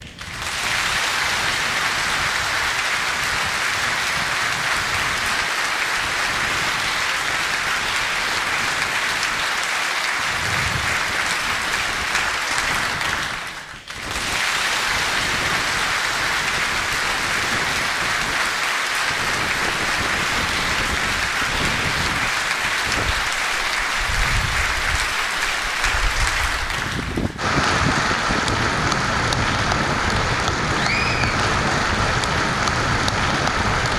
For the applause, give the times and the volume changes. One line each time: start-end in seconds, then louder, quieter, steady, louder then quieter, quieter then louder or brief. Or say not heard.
0.0-33.9 steady.